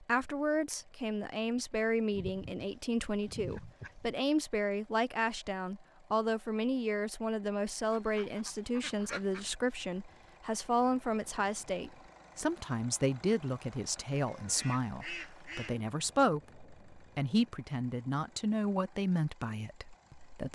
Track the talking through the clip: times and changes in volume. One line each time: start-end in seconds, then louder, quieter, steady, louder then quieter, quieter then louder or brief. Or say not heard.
0.0-20.5 steady.